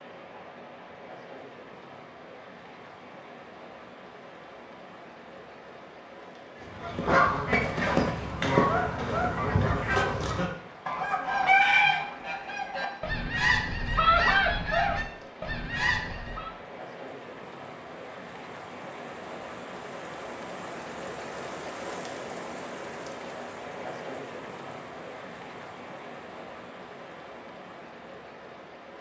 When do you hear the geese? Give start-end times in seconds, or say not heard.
6.6-16.6.